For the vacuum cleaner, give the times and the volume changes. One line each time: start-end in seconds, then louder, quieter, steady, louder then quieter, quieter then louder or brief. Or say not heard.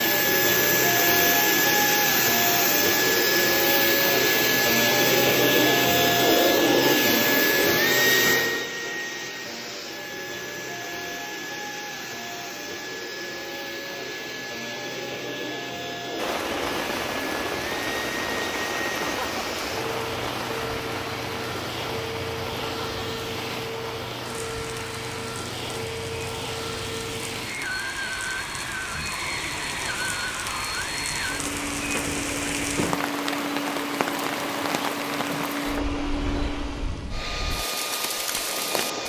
0.0-39.0 quieter.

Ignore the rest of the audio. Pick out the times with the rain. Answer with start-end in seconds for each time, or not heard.
16.1-39.0.